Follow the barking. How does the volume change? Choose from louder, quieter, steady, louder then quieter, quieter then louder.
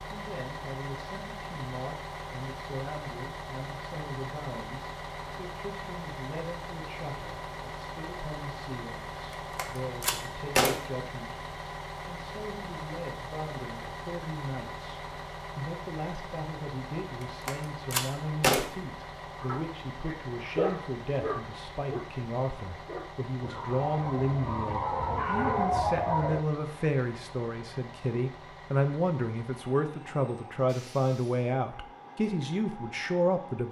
quieter then louder.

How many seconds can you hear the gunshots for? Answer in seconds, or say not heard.
2 s.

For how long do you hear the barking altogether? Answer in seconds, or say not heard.
7 s.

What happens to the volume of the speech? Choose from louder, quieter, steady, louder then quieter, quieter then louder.
louder.